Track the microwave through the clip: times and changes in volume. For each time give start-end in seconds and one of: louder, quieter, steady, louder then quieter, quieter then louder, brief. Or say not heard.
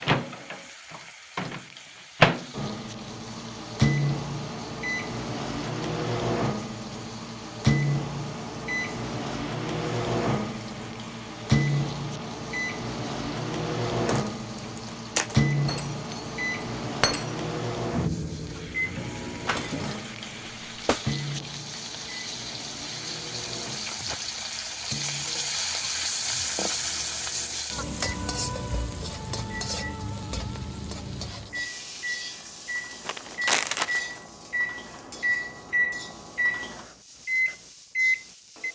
0.0-38.7 quieter then louder.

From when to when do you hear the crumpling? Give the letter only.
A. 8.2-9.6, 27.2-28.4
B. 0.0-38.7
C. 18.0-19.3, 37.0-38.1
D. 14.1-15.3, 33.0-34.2
D.